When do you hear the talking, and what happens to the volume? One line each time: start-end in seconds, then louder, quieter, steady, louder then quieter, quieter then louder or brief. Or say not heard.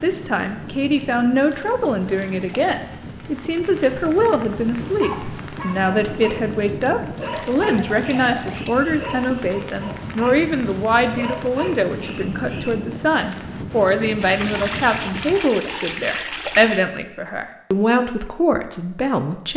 0.0-19.5 steady.